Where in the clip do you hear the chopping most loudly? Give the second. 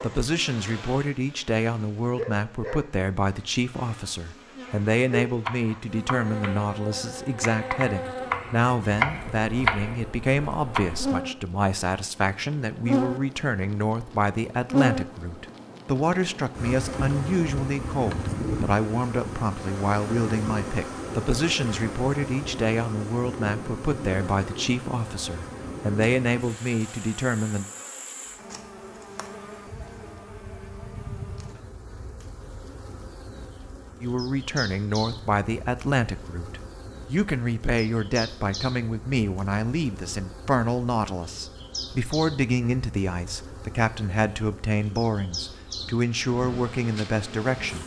10 s.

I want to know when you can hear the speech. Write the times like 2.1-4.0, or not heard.
0.0-27.6, 34.0-47.8.